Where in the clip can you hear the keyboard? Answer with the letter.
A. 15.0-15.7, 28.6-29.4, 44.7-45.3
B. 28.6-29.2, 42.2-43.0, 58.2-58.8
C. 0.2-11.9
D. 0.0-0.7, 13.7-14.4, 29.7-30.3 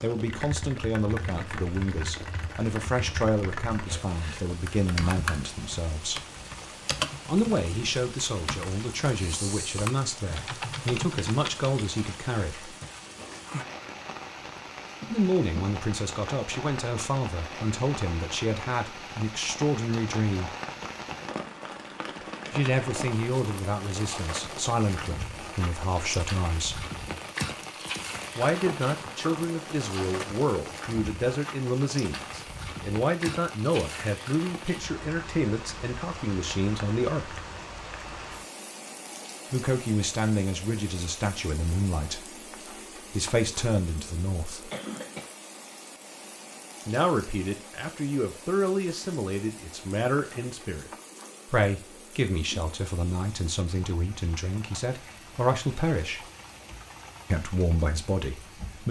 C.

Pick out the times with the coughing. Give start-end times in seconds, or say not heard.
15.0-15.7, 28.6-29.4, 44.7-45.3.